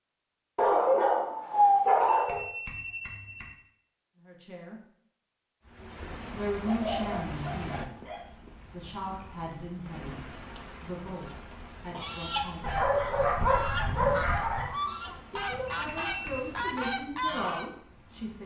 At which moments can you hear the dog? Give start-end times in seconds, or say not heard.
0.6-2.4, 6.3-8.2, 12.6-14.7.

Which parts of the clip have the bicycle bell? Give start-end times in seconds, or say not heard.
2.0-3.5, 15.7-16.4.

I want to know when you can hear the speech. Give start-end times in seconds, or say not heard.
4.2-4.8, 6.3-8.0, 8.6-12.8, 15.3-18.4.